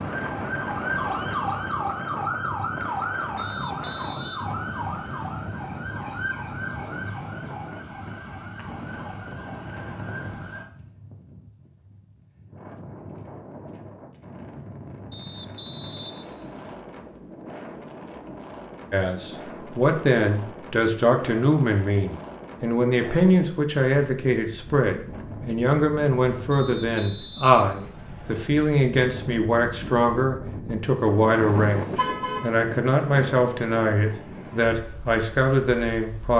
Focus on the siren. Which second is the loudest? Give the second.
1 s.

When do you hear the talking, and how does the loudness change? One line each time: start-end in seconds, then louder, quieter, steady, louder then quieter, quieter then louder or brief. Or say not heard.
18.9-36.3 steady.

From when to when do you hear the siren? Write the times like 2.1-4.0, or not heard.
0.0-10.7.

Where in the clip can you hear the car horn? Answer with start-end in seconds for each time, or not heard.
31.4-32.5.